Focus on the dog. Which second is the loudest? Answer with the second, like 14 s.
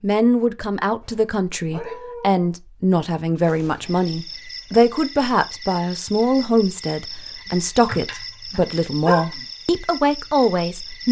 9 s.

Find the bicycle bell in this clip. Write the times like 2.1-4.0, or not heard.
not heard.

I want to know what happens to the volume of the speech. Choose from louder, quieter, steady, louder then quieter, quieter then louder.
steady.